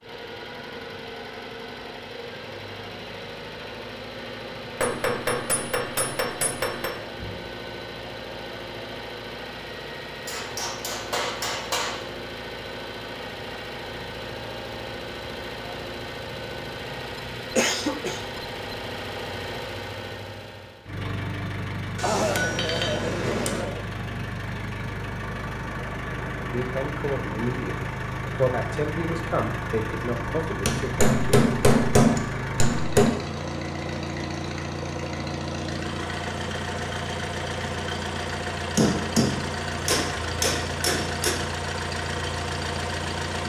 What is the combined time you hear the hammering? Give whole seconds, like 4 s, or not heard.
11 s.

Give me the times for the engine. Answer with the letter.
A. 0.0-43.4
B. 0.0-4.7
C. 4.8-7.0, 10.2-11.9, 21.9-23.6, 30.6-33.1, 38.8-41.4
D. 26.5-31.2
A.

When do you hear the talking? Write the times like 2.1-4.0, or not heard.
26.5-31.2.